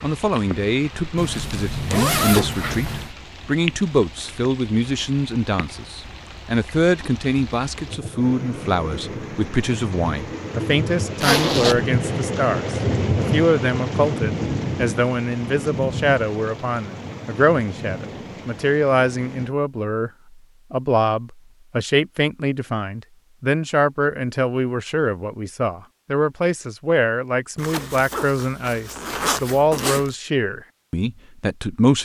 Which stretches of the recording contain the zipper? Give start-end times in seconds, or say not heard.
1.1-3.1, 11.2-11.8, 27.6-30.1.